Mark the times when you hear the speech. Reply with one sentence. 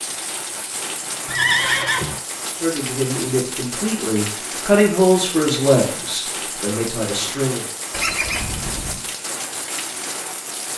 The speech can be heard from 2.5 to 7.7 s.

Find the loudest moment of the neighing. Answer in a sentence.
The volume of the neighing peaks at 2 seconds.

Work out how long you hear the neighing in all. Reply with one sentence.
You can hear the neighing for 2 seconds altogether.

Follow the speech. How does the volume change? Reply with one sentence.
The volume of the speech goes up, then down.